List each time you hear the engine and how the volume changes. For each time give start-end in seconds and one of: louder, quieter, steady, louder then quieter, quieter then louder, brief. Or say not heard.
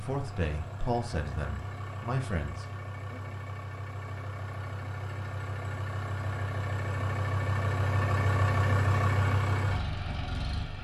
0.0-10.7 louder.